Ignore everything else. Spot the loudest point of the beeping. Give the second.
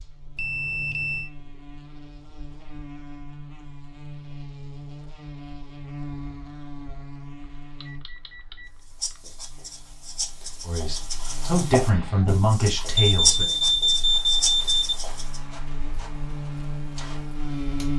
14 s.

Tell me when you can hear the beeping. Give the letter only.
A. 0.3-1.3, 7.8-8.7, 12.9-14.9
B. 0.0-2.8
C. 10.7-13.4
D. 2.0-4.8
A.